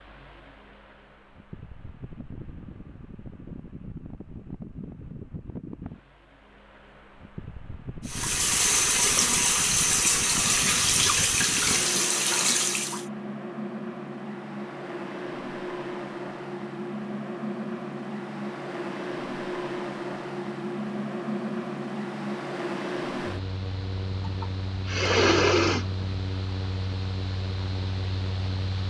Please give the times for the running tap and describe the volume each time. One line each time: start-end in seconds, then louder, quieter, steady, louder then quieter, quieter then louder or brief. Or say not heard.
8.1-13.1 steady.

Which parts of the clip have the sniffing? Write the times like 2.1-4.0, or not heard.
10.3-11.1, 24.2-26.1.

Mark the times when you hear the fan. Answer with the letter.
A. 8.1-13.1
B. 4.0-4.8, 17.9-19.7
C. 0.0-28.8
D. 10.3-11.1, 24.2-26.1
C.